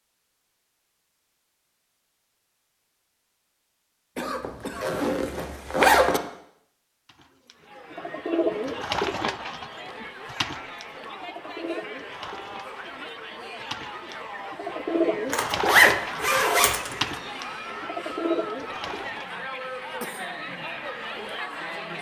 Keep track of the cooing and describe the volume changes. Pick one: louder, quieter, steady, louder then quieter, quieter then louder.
quieter then louder.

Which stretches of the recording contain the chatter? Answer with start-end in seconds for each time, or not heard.
7.5-21.9.